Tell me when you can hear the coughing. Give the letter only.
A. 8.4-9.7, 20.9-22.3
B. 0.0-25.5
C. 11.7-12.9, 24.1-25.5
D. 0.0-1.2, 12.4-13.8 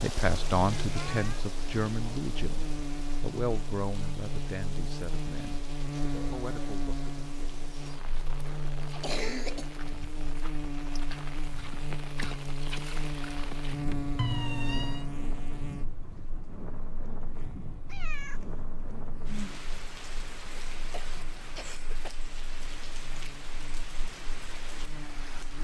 A.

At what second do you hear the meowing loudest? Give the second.
14 s.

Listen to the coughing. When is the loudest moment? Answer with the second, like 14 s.
9 s.